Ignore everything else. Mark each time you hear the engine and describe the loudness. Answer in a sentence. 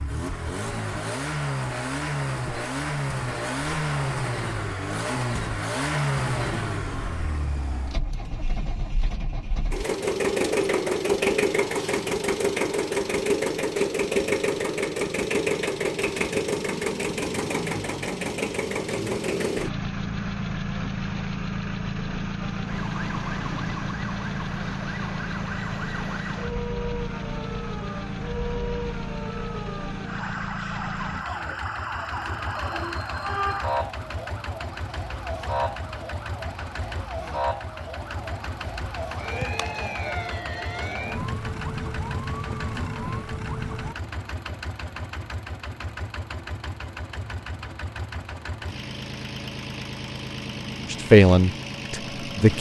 The engine can be heard from 0.0 to 52.5 s, getting quieter.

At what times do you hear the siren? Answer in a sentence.
The siren can be heard from 22.4 to 44.0 s.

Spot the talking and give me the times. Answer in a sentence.
You can hear the talking from 50.9 to 52.5 s.